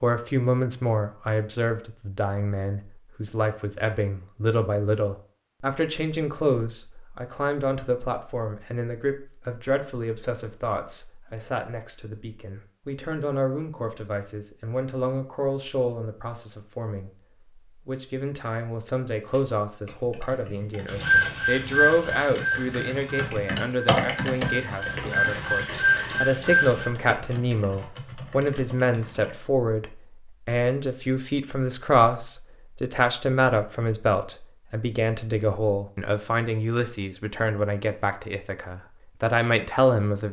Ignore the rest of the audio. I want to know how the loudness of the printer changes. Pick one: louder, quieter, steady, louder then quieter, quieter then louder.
quieter then louder.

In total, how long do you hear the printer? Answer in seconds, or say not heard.
6 s.